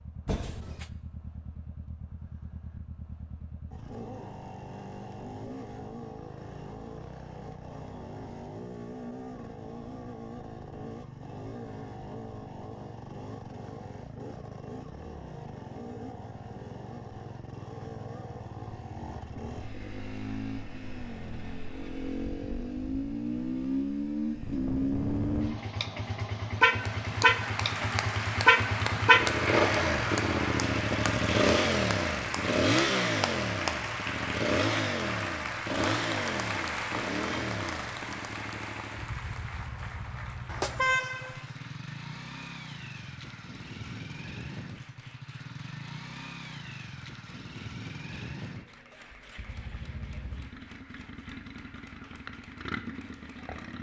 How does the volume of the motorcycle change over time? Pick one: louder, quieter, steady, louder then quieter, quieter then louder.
louder then quieter.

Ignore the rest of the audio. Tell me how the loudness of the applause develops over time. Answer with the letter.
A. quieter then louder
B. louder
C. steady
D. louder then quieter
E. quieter
E.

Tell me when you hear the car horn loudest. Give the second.
41 s.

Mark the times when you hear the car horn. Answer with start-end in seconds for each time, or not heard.
0.2-0.8, 40.5-41.5.